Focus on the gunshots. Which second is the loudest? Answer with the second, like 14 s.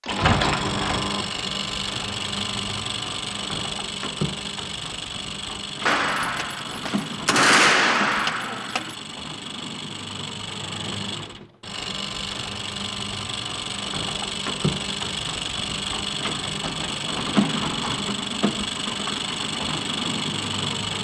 8 s.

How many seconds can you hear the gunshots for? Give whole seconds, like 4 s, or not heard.
3 s.